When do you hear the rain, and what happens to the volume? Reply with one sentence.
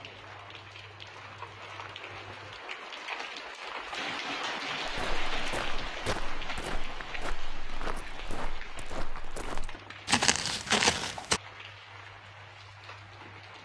You can hear the rain from 0.0 to 13.6 s, getting louder then quieter.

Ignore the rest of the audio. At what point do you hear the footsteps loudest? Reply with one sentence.
The loudest moment of the footsteps is at 11 seconds.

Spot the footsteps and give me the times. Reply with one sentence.
The footsteps can be heard from 4.8 to 11.4 s.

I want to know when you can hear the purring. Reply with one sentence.
The purring can't be heard in this clip.